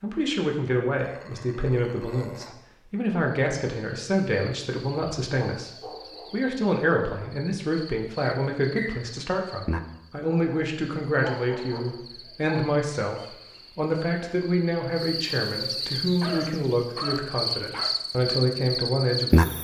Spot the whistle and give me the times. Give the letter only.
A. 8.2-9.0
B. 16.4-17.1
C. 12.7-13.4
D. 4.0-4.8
A.